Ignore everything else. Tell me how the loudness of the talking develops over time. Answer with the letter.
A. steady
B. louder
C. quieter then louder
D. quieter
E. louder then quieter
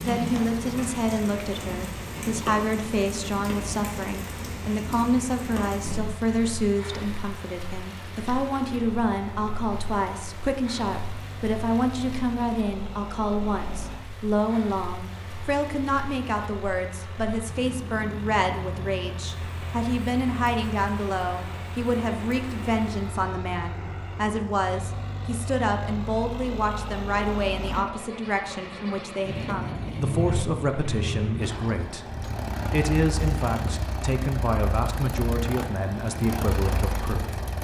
A.